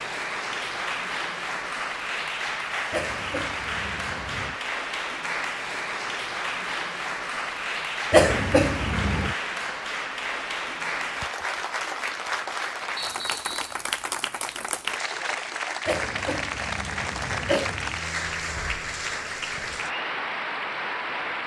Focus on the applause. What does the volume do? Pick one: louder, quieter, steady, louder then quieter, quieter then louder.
steady.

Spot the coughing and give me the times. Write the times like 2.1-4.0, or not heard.
2.9-4.6, 8.1-9.3, 15.8-18.1.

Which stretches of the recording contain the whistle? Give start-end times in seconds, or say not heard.
12.9-13.8.